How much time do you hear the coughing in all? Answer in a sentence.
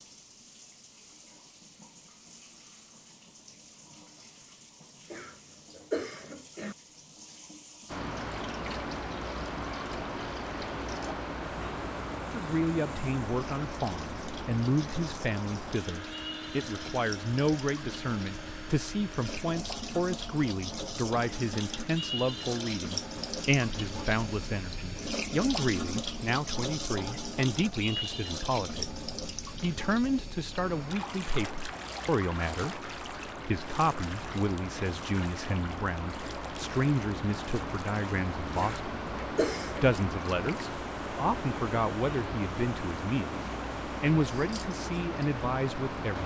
You can hear the coughing for 3 seconds altogether.